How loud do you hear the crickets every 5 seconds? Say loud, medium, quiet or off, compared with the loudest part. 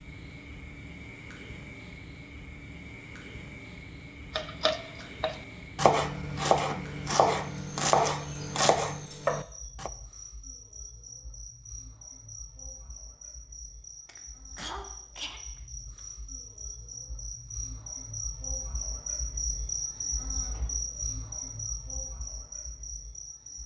medium, medium, medium, loud, loud.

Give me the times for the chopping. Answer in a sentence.
You can hear the chopping from 4.3 to 9.9 s.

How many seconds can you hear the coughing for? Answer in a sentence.
The coughing can be heard for 2 seconds in total.